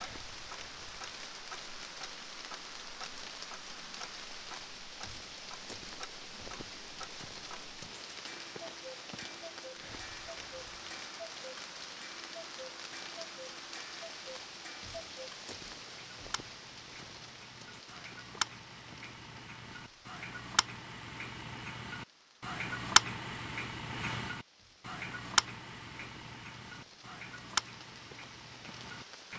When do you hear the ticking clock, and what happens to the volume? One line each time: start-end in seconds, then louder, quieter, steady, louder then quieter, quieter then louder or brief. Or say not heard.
0.0-29.3 louder.